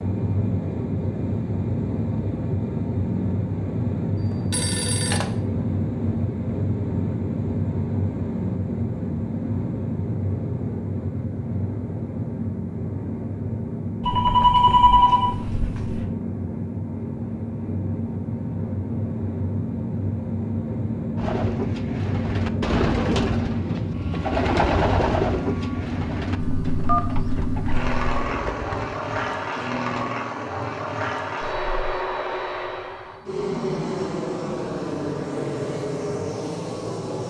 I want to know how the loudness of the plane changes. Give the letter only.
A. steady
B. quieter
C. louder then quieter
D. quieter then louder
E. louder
A.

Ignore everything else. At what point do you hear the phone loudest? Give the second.
15 s.